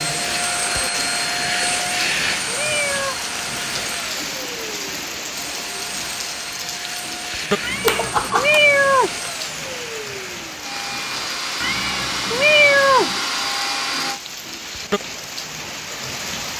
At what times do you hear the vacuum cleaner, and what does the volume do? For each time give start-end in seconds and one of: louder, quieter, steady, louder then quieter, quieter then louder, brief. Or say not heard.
0.0-14.2 quieter then louder.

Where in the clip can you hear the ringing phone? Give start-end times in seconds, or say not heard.
7.8-8.6.